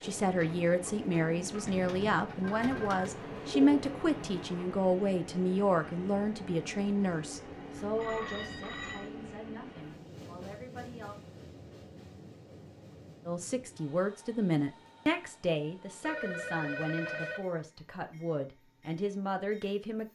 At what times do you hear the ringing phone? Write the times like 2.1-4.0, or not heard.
2.4-4.8, 8.0-9.1, 16.0-17.5.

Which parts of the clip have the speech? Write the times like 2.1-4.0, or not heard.
0.0-11.2, 13.2-20.1.